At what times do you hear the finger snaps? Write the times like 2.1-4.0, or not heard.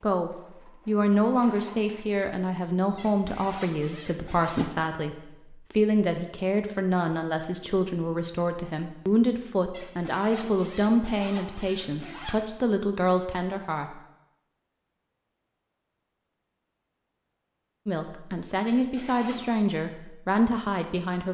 not heard.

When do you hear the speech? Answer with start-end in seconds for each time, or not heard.
0.0-13.9, 17.9-21.3.